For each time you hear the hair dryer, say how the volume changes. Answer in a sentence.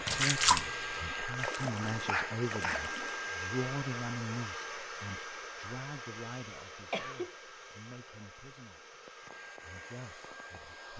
You can hear the hair dryer from 0.0 to 10.9 s, getting quieter.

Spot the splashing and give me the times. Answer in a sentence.
You can hear the splashing from 0.0 to 3.3 s.